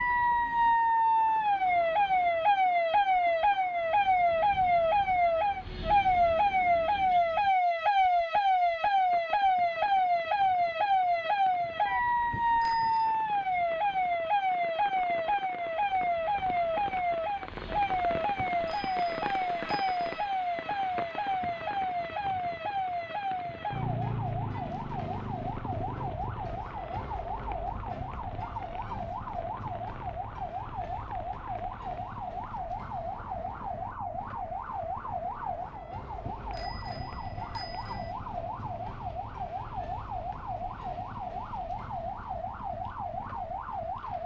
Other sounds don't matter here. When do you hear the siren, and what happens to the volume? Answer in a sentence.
The siren can be heard from 0.0 to 44.2 s, getting quieter.